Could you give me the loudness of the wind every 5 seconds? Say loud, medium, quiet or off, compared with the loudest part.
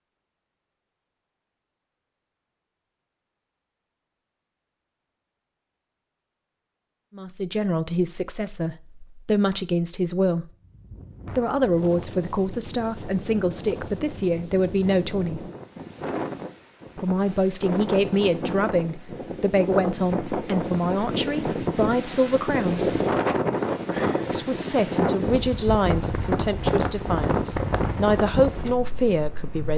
off, off, quiet, medium, loud, loud.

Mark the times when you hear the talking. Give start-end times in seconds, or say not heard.
7.2-10.4, 11.3-15.5, 16.9-23.0, 24.3-29.7.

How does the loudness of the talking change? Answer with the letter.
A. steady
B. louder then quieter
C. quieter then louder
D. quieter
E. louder
A.